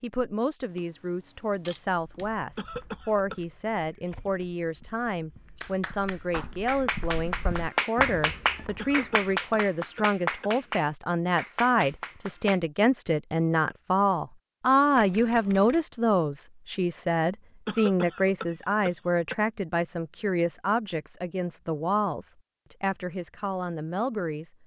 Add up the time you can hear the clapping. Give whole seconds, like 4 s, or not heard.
7 s.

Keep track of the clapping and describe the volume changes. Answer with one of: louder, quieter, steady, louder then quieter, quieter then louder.
louder then quieter.